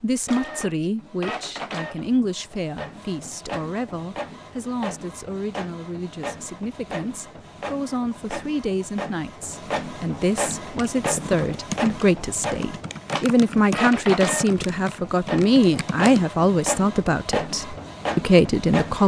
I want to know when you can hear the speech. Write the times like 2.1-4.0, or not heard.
0.0-19.0.